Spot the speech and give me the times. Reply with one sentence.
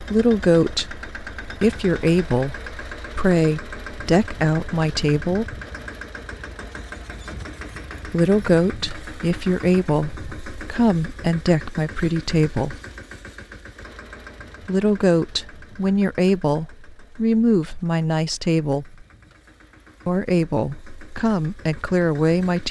You can hear the speech from 0.0 to 5.6 s, from 8.1 to 12.8 s, from 14.7 to 19.1 s and from 20.1 to 22.6 s.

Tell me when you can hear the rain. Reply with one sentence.
The rain can't be heard in this clip.